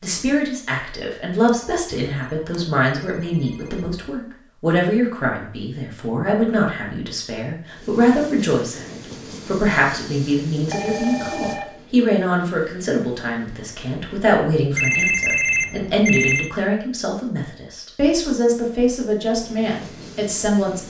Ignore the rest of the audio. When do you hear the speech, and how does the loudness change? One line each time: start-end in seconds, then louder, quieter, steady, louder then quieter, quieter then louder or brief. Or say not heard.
0.0-20.8 steady.